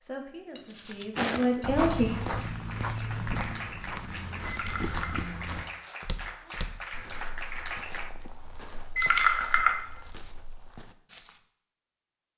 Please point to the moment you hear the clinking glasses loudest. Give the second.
9 s.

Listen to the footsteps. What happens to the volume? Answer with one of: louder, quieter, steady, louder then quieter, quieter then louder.
quieter.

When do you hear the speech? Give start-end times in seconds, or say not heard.
0.0-2.1.